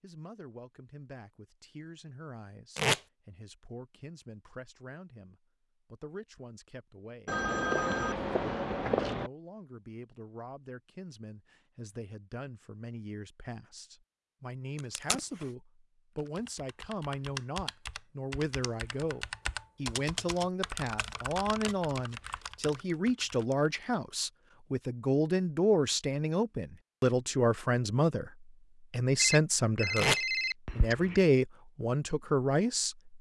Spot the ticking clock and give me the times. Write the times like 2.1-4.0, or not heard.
not heard.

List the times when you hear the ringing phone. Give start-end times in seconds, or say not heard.
7.2-9.3, 29.1-31.2.